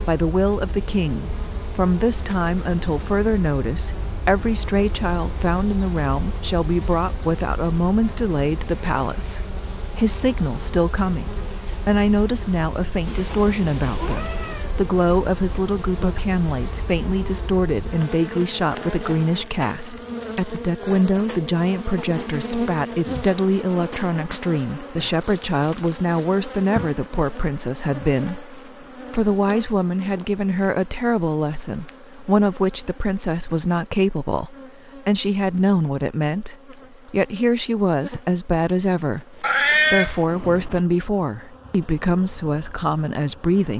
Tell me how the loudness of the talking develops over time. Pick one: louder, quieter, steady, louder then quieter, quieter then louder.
steady.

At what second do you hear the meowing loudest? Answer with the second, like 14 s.
40 s.